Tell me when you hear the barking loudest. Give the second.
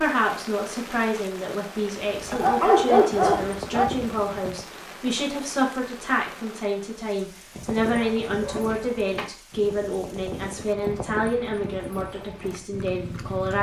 3 s.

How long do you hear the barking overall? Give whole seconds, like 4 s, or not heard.
3 s.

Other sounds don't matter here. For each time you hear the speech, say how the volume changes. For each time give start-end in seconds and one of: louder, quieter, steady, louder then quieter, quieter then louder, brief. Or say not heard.
0.0-13.5 steady.